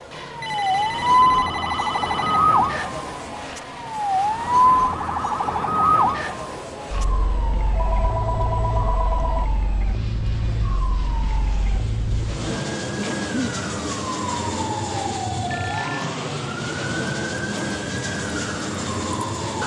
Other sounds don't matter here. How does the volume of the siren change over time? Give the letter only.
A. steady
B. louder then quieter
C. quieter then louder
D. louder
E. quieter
E.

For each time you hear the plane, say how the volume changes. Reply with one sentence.
The plane can be heard from 0.0 to 19.6 s, getting louder.